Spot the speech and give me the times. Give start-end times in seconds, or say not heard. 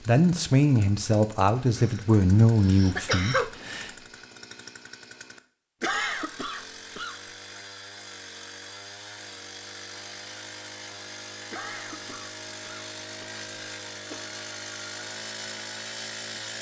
0.0-3.9.